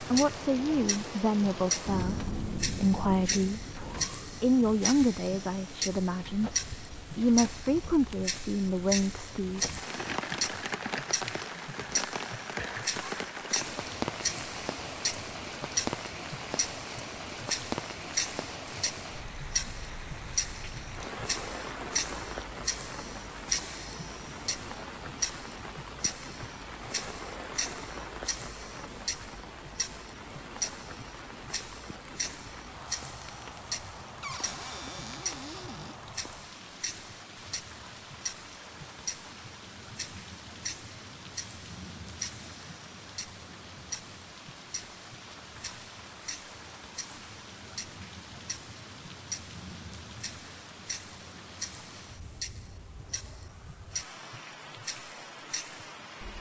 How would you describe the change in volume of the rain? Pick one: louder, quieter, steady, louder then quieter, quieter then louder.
quieter.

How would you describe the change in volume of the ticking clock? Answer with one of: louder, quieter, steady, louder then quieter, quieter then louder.
quieter.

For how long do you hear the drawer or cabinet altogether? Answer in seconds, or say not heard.
2 s.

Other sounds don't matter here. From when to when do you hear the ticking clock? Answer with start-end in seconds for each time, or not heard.
0.0-56.3.